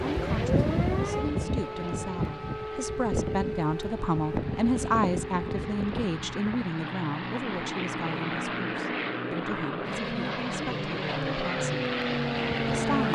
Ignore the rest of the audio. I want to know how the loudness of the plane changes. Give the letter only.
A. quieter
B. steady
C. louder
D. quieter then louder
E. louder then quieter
C.